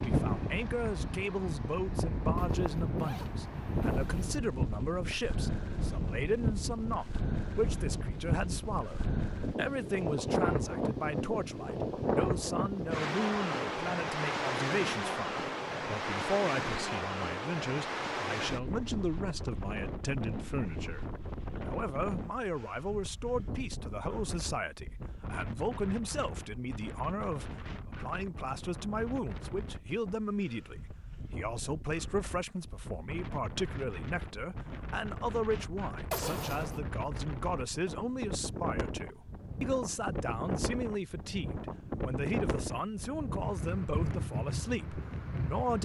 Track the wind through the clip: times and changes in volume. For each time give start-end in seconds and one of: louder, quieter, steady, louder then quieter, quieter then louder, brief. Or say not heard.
0.0-45.8 quieter then louder.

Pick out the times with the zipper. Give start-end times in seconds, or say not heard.
2.4-4.4, 36.1-36.8.